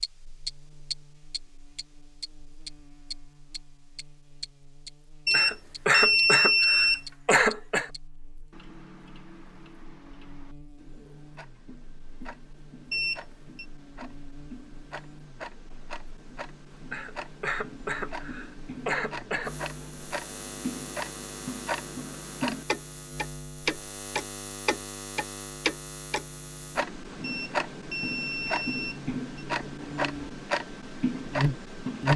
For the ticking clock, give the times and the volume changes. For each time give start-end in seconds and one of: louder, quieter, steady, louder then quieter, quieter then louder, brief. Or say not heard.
0.0-32.1 quieter then louder.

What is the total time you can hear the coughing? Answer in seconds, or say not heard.
5 s.